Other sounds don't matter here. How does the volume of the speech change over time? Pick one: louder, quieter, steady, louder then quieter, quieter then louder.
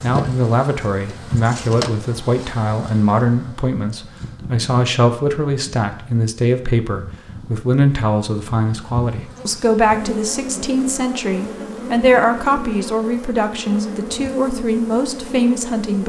steady.